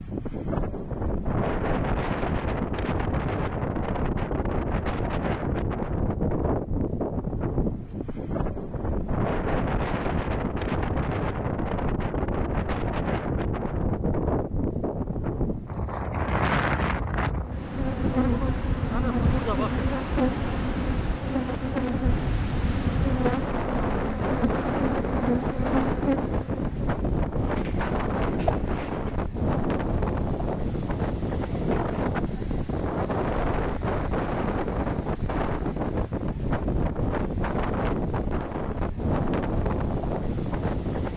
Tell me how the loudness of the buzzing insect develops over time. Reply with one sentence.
The volume of the buzzing insect stays about the same.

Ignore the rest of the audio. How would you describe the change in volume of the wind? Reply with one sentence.
The volume of the wind stays about the same.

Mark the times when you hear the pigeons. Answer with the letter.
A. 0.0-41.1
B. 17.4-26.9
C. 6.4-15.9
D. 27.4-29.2
D.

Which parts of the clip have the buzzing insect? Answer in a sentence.
You can hear the buzzing insect from 17.4 to 26.9 s.